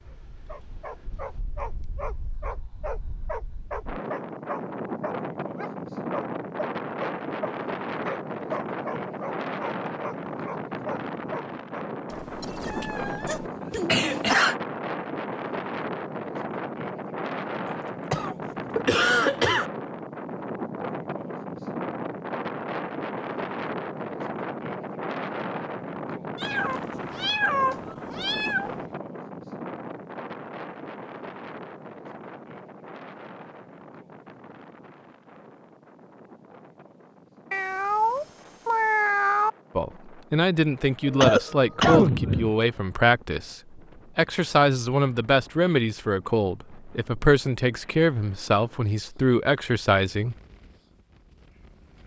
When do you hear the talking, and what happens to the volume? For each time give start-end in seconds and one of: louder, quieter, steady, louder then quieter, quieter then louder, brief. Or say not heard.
39.8-50.4 steady.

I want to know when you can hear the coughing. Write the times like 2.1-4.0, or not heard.
13.2-14.6, 17.6-19.7, 41.0-42.5.